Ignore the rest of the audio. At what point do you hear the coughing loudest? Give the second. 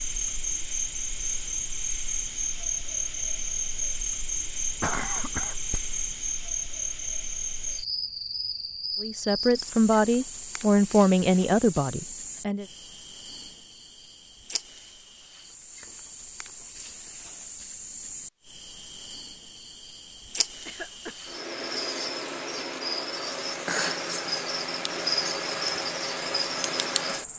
5 s.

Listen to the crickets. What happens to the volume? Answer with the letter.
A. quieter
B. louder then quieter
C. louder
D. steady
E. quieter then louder
E.